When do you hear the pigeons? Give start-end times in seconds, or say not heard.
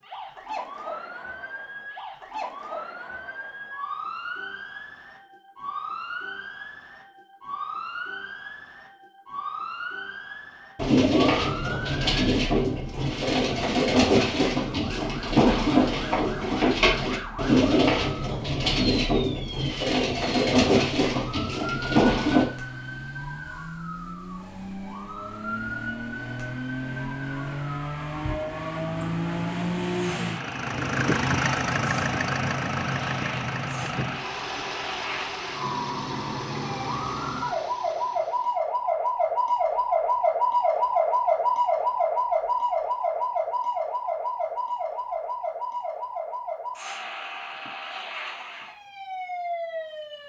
10.8-22.4.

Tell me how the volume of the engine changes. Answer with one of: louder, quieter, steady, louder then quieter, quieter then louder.
louder then quieter.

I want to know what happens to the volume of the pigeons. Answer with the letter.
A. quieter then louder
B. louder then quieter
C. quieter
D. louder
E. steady
E.